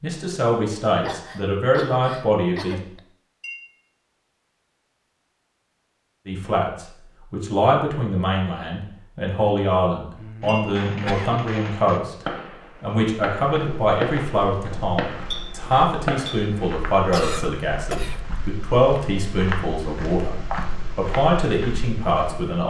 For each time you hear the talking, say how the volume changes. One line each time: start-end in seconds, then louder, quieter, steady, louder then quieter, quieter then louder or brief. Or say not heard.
0.0-2.8 brief
6.2-22.6 steady.